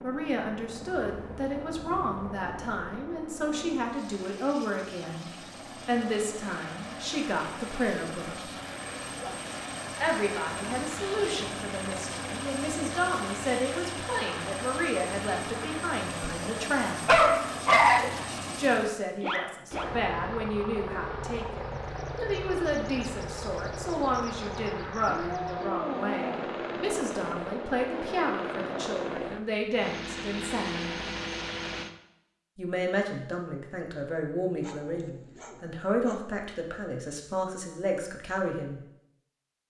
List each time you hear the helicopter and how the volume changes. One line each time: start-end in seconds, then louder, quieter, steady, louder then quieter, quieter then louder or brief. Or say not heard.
0.0-31.9 louder.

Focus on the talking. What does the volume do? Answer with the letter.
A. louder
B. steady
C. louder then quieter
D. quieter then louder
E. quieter
B.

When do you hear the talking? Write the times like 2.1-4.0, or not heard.
0.0-8.5, 10.0-17.1, 18.6-30.9, 32.5-38.8.